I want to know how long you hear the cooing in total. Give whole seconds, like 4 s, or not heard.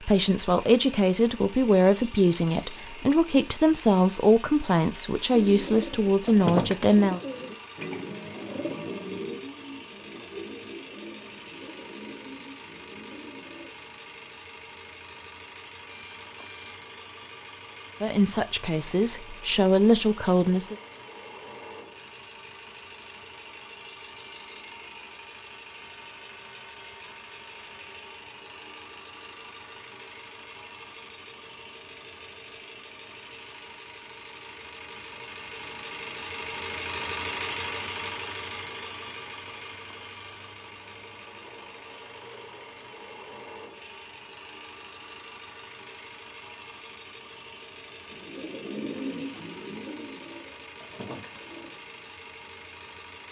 12 s.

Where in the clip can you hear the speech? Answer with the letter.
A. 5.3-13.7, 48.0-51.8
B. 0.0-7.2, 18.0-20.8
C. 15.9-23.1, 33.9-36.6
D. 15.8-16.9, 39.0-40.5
B.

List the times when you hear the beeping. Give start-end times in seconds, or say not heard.
15.8-16.9, 39.0-40.5.